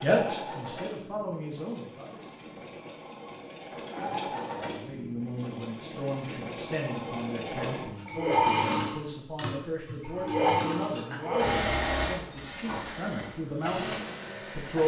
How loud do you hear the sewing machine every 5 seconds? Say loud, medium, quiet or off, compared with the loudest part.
medium, loud, loud.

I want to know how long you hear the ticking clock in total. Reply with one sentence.
The ticking clock can't be heard in this clip.